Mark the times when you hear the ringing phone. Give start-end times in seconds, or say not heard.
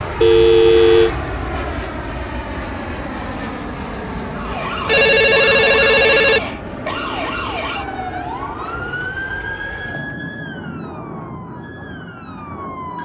0.2-1.1, 4.8-6.4, 9.0-10.2.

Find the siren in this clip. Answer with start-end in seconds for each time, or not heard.
4.3-13.0.